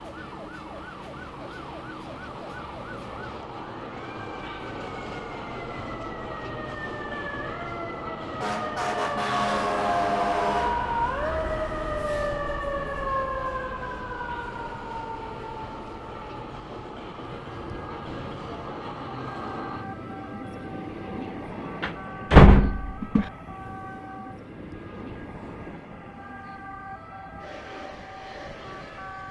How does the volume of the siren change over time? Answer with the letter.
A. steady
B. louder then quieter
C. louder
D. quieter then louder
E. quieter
B.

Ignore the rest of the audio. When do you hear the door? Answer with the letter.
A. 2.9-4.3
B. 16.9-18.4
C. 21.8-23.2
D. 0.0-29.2
C.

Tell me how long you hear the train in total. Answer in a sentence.
You can hear the train for 29 seconds altogether.